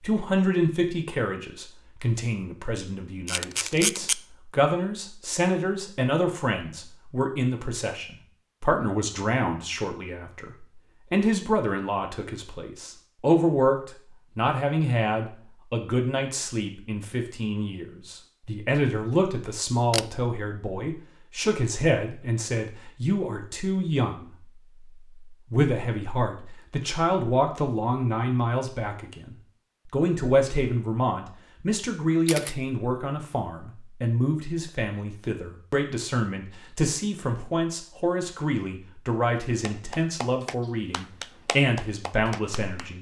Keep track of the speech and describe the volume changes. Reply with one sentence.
The loudness of the speech stays about the same.